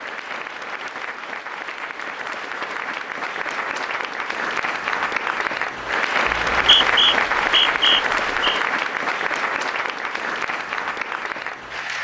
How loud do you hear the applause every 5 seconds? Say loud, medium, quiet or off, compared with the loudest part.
medium, loud, medium.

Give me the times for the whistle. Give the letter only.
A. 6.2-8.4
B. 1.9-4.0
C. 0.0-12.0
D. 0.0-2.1
A.